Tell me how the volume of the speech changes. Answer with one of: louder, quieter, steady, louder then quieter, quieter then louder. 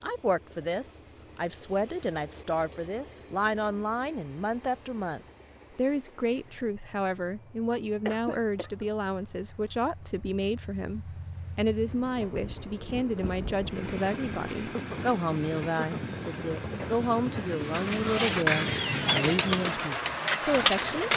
steady.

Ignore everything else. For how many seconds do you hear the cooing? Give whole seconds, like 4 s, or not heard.
4 s.